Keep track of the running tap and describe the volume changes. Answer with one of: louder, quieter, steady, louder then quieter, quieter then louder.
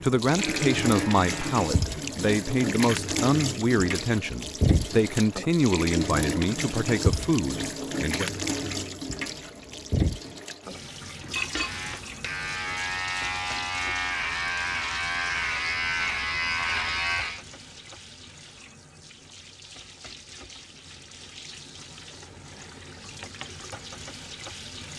quieter.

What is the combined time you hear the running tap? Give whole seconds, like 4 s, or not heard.
25 s.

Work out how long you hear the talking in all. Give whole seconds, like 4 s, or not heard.
8 s.